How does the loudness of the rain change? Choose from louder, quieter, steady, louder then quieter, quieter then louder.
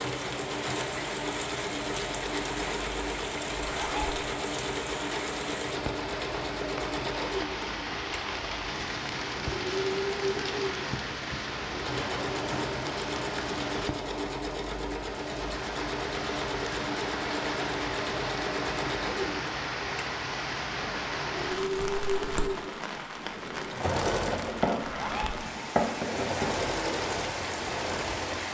steady.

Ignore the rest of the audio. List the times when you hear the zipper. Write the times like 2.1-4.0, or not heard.
3.6-4.2, 24.8-25.4.